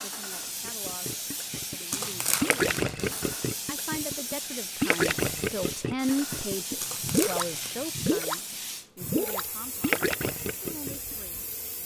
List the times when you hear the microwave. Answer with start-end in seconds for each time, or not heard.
not heard.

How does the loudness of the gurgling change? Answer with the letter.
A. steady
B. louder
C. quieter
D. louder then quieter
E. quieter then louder
A.